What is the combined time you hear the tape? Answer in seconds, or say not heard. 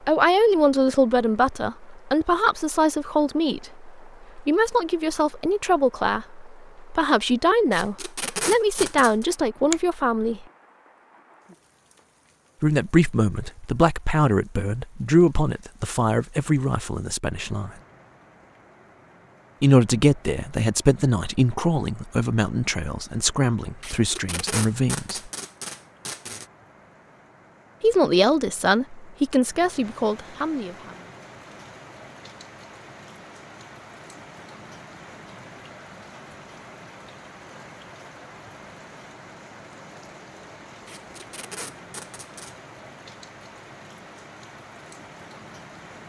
6 s.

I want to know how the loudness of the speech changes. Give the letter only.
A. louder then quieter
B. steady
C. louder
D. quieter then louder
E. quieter
B.